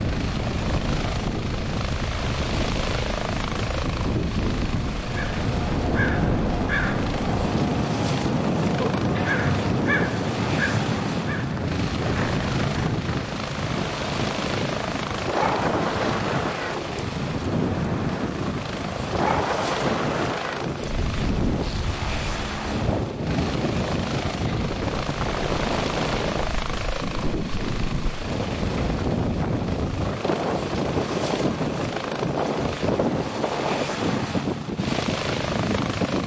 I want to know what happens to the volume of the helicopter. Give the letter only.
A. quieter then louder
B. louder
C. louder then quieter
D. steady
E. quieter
D.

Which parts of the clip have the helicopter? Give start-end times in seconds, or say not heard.
0.0-36.2.